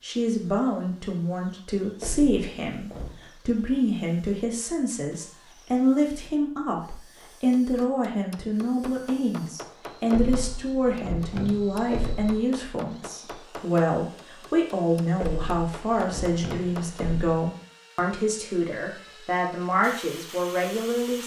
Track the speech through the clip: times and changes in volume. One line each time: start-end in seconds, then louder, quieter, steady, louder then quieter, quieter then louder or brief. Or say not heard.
0.0-21.2 steady.